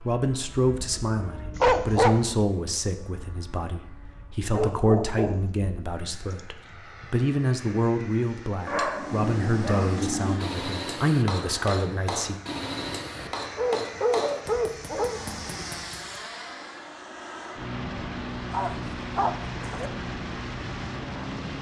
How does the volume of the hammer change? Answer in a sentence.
The loudness of the hammer goes down.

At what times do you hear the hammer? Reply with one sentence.
The hammer can be heard from 8.6 to 16.2 s.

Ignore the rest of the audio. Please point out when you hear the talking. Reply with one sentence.
You can hear the talking from 0.0 to 12.3 s.